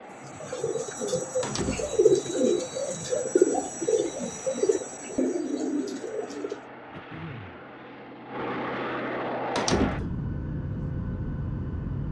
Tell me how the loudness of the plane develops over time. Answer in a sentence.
The volume of the plane goes up.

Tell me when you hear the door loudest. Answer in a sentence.
The loudest moment of the door is at 10 seconds.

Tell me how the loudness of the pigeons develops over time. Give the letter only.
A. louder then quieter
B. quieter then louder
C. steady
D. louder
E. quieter
A.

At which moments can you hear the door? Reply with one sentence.
You can hear the door from 1.4 to 2.0 s and from 9.6 to 10.2 s.